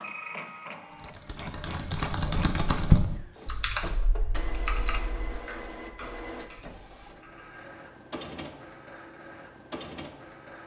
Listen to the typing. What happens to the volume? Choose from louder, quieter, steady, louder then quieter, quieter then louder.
louder then quieter.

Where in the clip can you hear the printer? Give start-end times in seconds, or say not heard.
0.0-10.6.